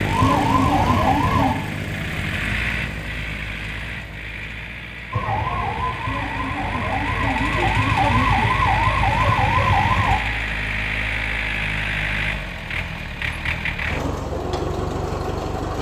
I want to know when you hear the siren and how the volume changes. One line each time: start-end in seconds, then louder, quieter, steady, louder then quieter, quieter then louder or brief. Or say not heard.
0.0-1.6 brief
5.1-10.2 louder.